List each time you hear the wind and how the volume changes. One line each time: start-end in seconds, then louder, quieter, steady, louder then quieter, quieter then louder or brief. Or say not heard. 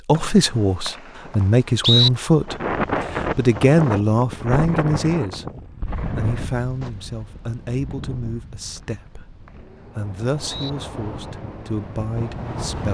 2.4-12.8 quieter then louder.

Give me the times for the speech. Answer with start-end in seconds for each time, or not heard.
0.1-5.5, 6.0-12.8.